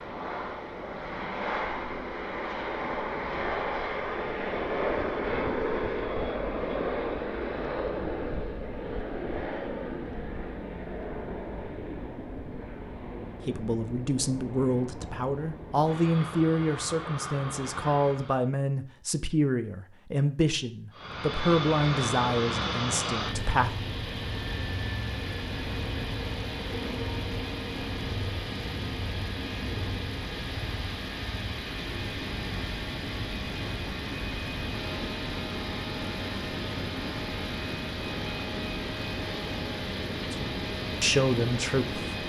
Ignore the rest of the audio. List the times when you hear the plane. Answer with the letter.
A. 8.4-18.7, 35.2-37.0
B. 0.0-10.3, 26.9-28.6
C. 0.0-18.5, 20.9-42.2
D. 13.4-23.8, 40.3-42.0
C.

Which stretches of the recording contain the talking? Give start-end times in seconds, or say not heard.
13.4-23.8, 40.3-42.0.